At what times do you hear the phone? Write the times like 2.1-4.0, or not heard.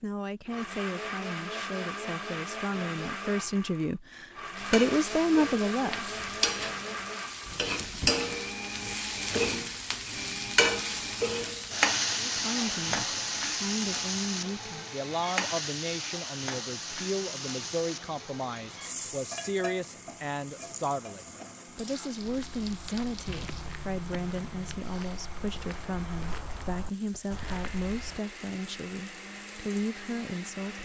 not heard.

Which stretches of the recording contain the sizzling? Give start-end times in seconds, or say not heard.
4.5-30.8.